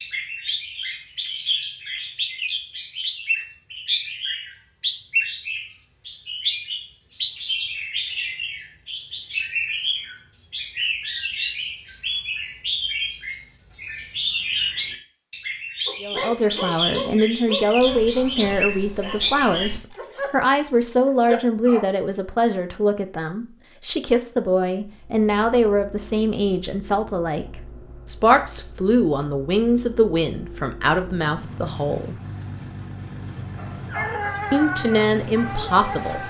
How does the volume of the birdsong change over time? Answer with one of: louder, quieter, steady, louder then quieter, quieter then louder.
steady.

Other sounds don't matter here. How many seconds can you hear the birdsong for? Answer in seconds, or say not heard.
20 s.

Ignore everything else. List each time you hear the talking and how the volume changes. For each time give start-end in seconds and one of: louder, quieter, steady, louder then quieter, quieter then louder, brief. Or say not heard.
16.0-32.1 steady
34.5-36.2 brief.